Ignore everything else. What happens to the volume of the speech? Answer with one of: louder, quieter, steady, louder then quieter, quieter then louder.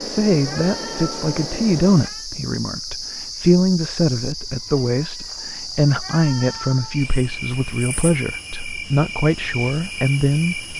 steady.